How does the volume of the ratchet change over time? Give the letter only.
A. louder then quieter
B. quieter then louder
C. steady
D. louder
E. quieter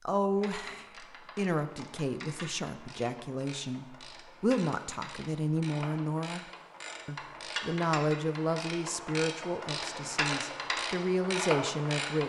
D.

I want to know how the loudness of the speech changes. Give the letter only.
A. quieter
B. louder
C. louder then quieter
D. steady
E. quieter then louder
D.